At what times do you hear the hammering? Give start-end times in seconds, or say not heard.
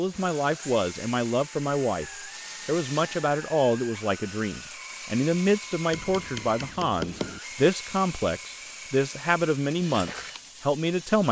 5.9-7.4.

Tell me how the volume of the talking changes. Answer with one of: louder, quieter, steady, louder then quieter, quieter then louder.
steady.